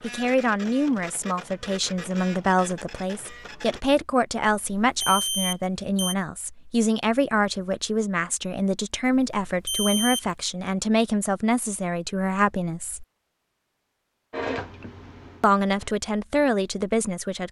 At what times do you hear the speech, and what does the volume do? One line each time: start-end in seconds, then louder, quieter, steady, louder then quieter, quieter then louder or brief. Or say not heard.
0.0-13.1 steady
15.4-17.4 brief.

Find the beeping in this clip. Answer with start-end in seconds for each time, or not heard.
4.5-6.2, 9.2-10.2.